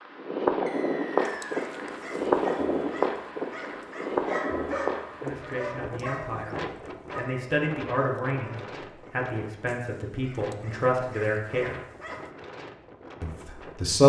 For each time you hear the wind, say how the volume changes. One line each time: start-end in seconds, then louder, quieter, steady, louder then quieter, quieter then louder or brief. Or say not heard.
0.0-14.0 quieter.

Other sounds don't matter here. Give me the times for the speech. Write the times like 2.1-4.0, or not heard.
5.2-11.8, 13.2-14.0.